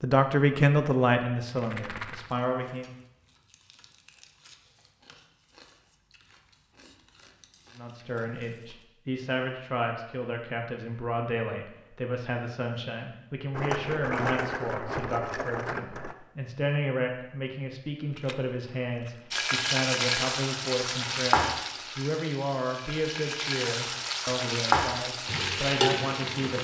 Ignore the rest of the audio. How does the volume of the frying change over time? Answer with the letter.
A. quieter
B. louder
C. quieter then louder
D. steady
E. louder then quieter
C.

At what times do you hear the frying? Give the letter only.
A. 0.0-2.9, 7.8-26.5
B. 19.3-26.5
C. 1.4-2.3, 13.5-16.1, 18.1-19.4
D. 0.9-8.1
B.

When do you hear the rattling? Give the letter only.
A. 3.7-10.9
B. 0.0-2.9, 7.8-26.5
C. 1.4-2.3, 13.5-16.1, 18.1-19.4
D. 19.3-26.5
C.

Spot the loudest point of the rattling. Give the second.
14 s.